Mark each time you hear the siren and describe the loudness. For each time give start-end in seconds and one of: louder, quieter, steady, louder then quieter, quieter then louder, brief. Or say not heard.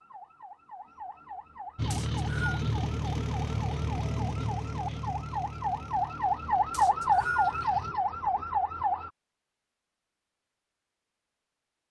0.0-9.1 louder.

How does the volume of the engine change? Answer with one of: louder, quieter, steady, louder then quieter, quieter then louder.
quieter.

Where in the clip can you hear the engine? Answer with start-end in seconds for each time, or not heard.
1.8-8.0.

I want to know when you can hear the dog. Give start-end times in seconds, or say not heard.
not heard.